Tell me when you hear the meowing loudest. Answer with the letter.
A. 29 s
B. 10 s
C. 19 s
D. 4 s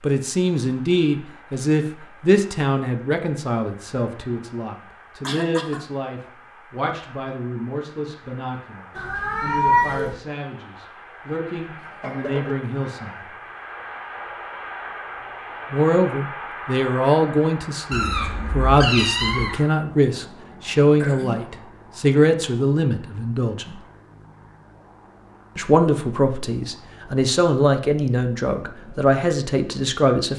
B.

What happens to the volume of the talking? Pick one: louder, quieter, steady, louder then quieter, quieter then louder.
quieter then louder.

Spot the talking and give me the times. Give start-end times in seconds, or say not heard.
0.0-13.2, 15.7-23.8, 25.6-30.3.